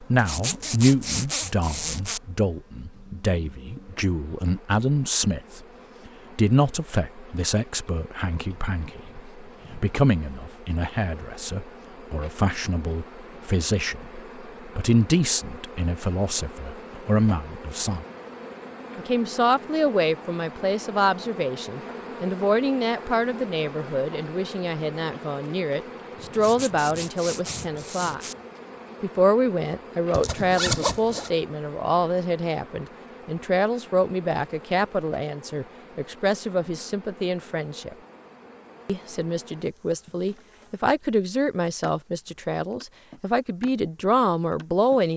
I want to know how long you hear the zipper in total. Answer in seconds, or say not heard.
5 s.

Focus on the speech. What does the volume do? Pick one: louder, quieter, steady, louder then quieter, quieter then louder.
steady.